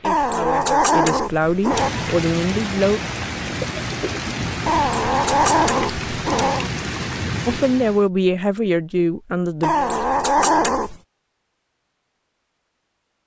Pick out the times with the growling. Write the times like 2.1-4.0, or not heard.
0.0-1.9, 4.7-6.7, 9.6-11.0.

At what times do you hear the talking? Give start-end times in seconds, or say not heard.
0.0-3.0, 7.5-10.8.